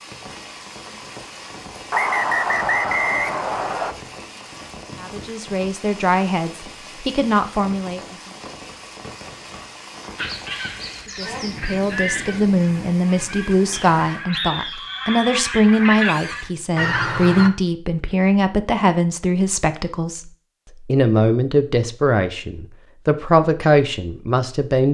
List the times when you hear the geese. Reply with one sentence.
You can hear the geese from 10.2 to 17.5 s.